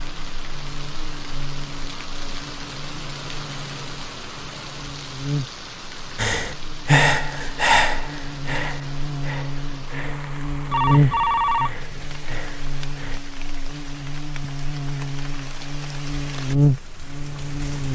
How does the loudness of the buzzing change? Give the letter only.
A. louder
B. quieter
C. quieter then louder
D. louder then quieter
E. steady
A.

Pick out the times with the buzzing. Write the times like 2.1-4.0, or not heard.
0.0-17.9.